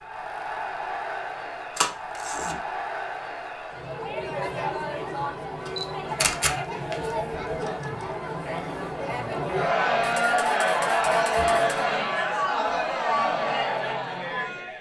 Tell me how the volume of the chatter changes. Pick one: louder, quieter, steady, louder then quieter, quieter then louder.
louder.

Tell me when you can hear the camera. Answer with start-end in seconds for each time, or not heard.
1.8-2.5, 5.7-7.9, 10.0-11.8.